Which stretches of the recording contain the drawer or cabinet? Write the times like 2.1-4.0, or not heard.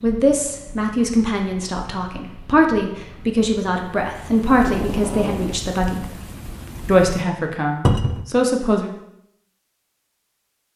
7.8-8.2.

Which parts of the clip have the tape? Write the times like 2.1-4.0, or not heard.
4.5-5.6.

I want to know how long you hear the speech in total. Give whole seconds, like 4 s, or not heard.
8 s.